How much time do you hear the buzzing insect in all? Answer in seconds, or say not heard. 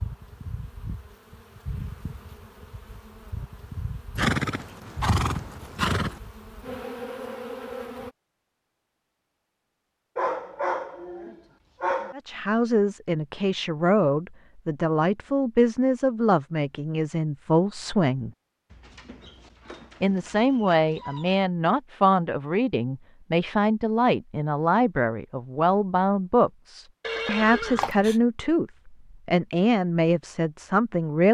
8 s.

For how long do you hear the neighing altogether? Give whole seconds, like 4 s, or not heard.
3 s.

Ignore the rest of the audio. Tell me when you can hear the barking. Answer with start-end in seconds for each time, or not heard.
10.2-12.2, 18.7-21.4.